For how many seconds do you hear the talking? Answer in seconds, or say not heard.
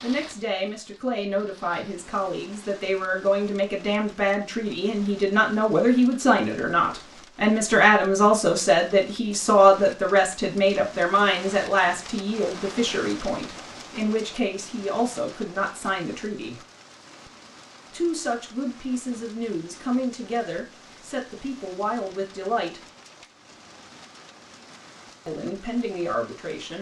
23 s.